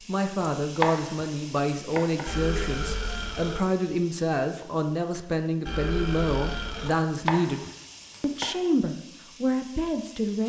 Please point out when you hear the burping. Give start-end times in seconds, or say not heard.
2.2-3.6, 5.7-7.0.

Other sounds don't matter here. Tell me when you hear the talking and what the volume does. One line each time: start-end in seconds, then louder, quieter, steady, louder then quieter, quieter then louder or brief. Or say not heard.
0.1-10.4 steady.